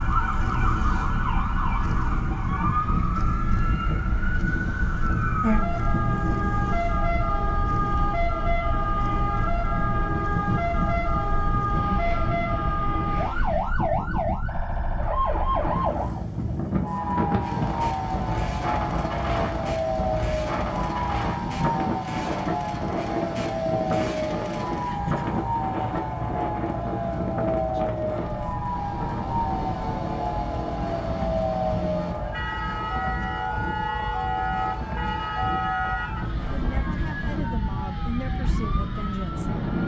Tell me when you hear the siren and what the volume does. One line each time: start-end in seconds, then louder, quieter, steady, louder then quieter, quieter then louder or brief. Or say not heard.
0.0-39.8 steady.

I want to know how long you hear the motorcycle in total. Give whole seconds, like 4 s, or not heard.
32 s.